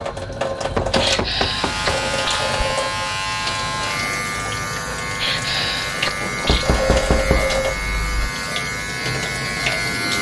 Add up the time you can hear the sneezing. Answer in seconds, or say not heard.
3 s.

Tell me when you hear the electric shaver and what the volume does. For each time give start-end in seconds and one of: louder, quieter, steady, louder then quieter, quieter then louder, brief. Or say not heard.
1.2-10.1 steady.